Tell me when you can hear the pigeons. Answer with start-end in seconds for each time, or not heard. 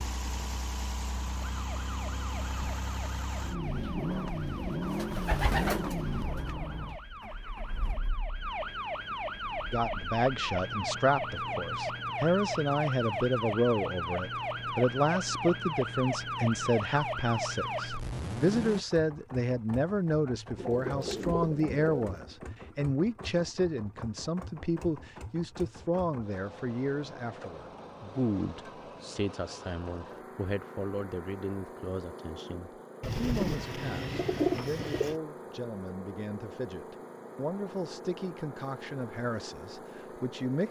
3.9-6.5, 20.6-22.2, 33.0-35.1.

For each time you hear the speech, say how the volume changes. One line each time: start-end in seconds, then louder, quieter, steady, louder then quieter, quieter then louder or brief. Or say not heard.
9.7-40.6 quieter.